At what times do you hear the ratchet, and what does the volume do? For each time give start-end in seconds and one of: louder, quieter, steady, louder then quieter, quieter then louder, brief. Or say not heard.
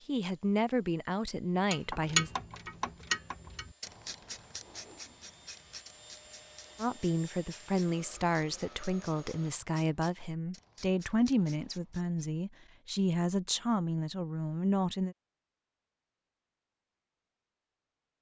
1.7-12.3 quieter.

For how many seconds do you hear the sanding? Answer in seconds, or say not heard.
not heard.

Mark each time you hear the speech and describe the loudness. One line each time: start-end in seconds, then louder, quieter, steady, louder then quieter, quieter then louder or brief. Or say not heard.
0.1-2.3 brief
6.8-15.2 steady.